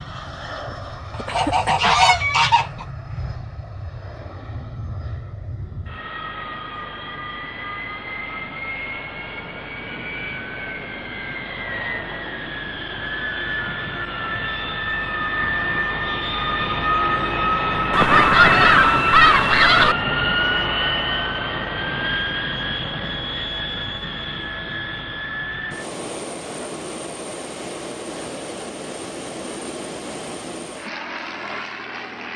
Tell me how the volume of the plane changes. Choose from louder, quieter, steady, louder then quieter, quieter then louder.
louder then quieter.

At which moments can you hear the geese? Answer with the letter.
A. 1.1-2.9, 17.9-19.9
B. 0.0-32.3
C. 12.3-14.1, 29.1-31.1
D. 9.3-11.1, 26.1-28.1
A.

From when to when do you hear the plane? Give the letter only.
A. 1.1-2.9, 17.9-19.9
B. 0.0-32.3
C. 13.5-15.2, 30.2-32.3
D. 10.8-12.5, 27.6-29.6
B.